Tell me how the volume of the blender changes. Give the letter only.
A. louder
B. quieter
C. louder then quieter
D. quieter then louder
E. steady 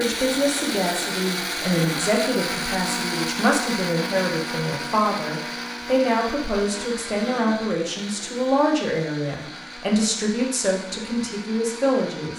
B.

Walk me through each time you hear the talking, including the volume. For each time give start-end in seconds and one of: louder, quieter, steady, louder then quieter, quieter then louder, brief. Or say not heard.
0.0-12.3 steady.